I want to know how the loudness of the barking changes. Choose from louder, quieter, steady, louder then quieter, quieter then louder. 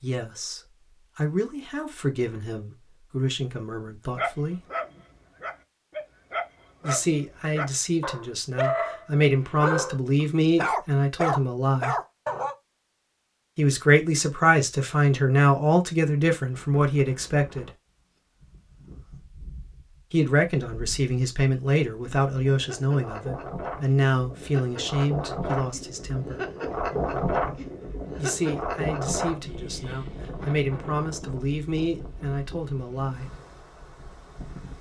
louder.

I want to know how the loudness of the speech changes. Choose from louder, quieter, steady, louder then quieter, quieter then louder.
louder then quieter.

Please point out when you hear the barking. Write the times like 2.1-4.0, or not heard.
4.2-12.6.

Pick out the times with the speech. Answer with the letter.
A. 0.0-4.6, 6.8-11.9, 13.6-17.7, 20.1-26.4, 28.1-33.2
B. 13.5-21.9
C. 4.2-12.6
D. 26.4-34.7
A.